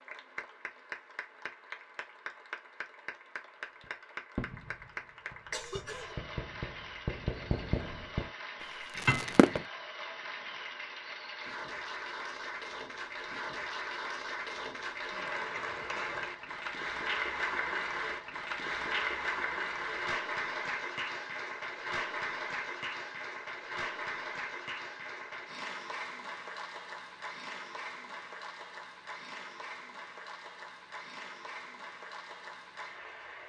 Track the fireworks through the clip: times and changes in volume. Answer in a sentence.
The fireworks can be heard from 3.8 to 8.2 s, getting quieter then louder; and briefly from 8.9 to 9.7 s.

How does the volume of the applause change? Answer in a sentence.
The volume of the applause goes up, then down.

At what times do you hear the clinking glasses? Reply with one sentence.
You can hear the clinking glasses from 8.9 to 9.6 s.